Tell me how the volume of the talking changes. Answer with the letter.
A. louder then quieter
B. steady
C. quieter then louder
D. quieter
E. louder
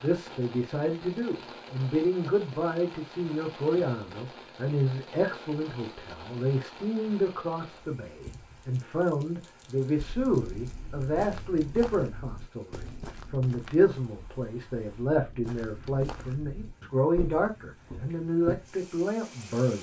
B.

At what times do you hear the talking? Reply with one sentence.
You can hear the talking from 0.0 to 19.7 s.